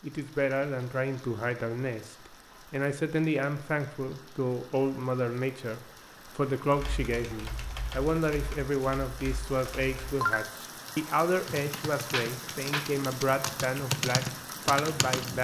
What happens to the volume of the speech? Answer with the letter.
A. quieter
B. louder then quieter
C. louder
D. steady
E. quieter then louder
D.